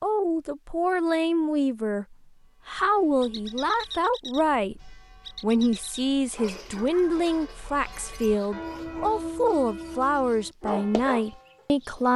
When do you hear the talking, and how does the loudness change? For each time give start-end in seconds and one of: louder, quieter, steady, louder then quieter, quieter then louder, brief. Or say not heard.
0.0-12.1 steady.